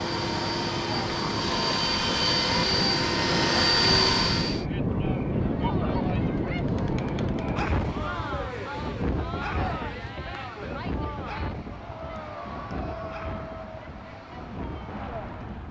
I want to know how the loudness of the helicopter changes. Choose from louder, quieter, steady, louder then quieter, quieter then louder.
louder.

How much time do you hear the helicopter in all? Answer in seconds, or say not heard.
5 s.